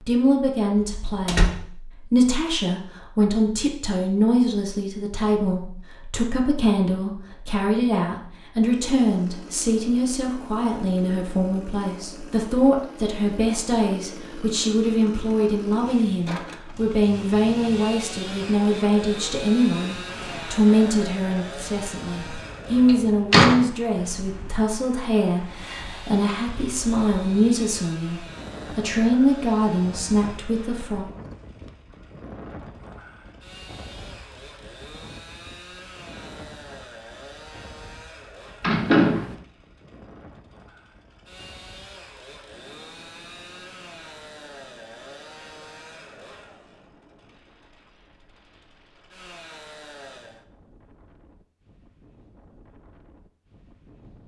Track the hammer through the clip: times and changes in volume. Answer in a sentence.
The hammer can't be heard in this clip.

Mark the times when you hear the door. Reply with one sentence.
You can hear the door from 0.8 to 1.5 s, from 22.9 to 23.6 s and from 38.6 to 39.4 s.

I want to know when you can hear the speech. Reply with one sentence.
The speech can be heard from 0.1 to 31.1 s.